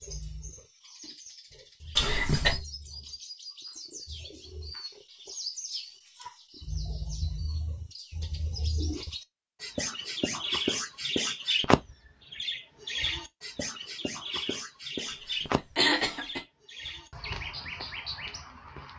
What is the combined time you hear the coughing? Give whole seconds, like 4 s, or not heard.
2 s.